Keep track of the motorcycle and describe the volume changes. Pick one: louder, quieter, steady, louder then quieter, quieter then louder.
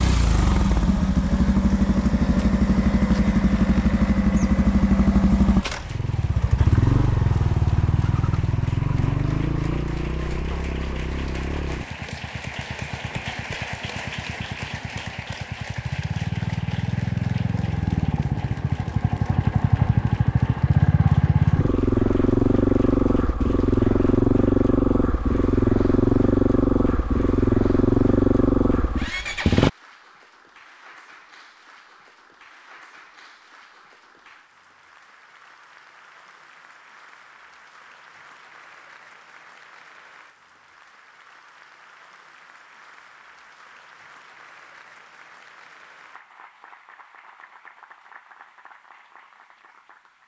quieter then louder.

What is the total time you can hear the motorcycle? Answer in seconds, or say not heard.
30 s.